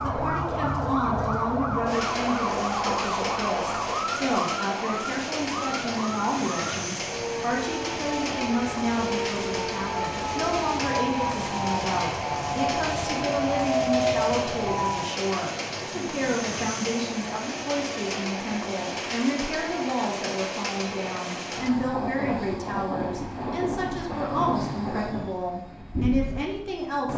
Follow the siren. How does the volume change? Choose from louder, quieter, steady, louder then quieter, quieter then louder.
quieter then louder.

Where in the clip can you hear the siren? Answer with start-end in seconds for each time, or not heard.
0.0-15.1.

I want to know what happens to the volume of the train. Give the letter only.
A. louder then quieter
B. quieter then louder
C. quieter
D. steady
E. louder
D.